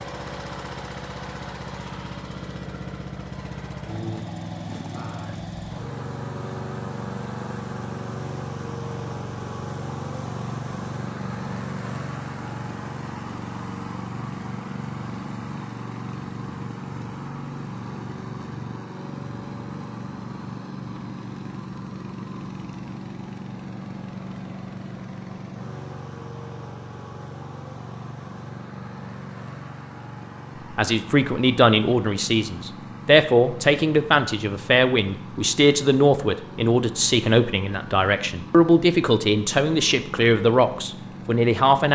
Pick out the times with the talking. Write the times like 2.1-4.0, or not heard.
30.7-41.9.